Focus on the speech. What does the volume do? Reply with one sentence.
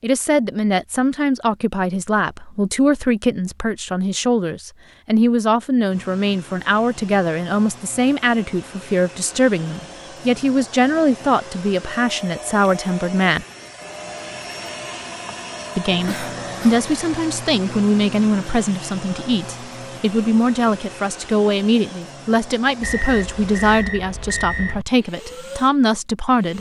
The loudness of the speech stays about the same.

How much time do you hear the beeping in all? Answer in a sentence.
The beeping can be heard for 2 seconds in total.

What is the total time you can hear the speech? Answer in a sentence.
You can hear the speech for 24 seconds altogether.